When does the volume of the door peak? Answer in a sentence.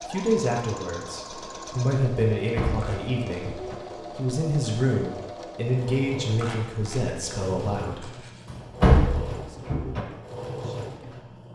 The loudest moment of the door is at 9 seconds.